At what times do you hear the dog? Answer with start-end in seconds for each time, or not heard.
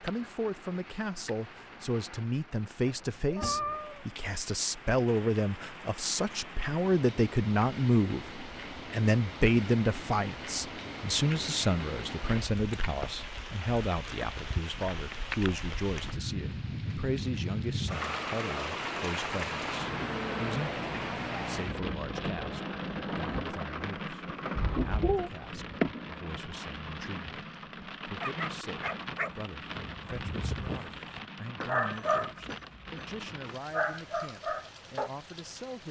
28.2-35.1.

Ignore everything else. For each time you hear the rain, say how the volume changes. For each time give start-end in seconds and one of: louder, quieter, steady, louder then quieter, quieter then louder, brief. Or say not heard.
0.0-35.8 louder then quieter.